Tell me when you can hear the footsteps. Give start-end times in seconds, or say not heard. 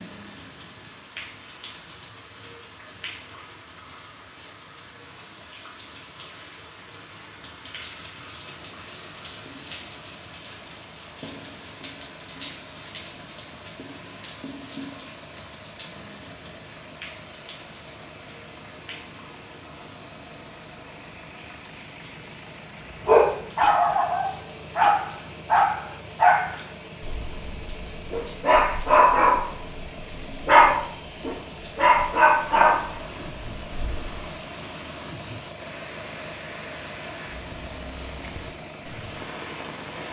not heard.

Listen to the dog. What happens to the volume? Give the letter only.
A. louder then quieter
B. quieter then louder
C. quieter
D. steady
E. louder
D.